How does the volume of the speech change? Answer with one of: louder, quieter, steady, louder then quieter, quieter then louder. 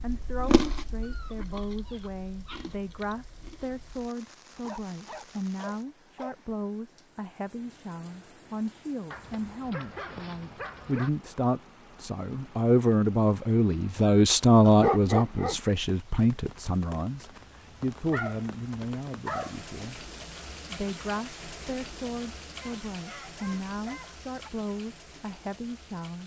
louder then quieter.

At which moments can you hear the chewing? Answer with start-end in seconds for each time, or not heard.
0.0-3.9.